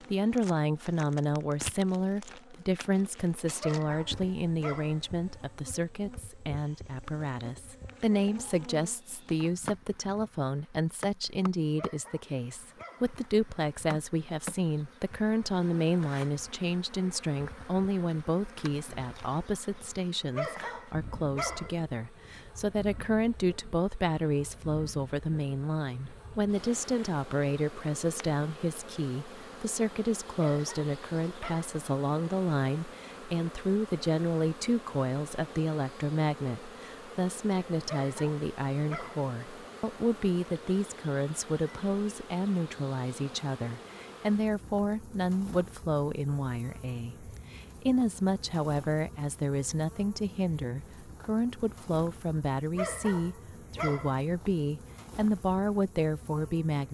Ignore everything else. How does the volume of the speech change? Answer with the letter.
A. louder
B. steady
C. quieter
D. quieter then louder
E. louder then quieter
B.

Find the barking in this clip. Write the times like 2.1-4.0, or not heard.
3.5-5.0, 11.8-13.2, 20.3-21.8, 30.4-31.8, 37.9-39.3, 52.8-54.1.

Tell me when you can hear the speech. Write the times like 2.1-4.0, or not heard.
0.1-56.8.